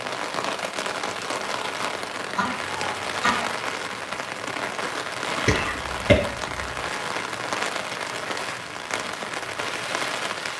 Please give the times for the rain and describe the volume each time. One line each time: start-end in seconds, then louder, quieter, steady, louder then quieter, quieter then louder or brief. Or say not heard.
0.0-10.5 steady.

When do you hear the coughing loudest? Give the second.
6 s.